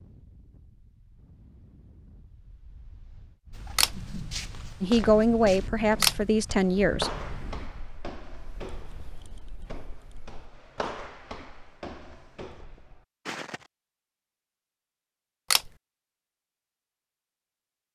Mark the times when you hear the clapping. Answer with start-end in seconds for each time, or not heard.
not heard.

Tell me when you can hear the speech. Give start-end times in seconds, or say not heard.
4.8-7.1.